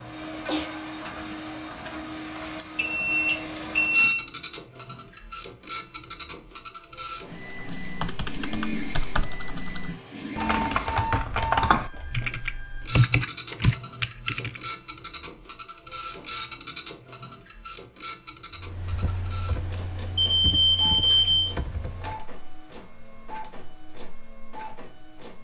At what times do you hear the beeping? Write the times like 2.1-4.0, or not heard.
2.8-4.2, 10.3-12.2, 20.1-21.5.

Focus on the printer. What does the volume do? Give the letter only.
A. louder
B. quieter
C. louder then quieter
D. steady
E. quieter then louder
B.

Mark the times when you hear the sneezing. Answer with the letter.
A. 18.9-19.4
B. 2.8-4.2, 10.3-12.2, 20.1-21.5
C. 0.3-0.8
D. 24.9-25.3
C.